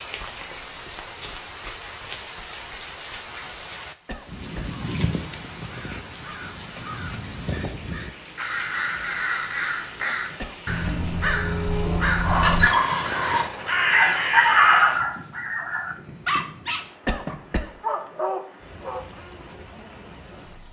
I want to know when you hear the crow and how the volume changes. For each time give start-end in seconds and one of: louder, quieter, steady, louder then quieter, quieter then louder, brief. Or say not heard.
4.2-15.0 louder.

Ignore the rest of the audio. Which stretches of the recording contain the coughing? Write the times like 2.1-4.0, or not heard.
4.0-4.8, 10.3-11.1, 17.1-17.8.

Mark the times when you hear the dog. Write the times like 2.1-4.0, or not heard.
12.1-19.1.